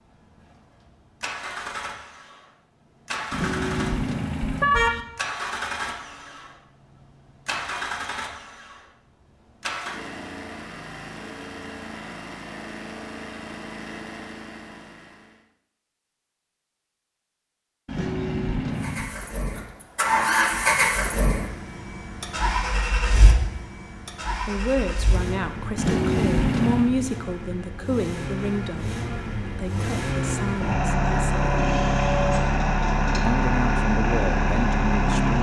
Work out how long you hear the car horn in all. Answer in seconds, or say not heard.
4 s.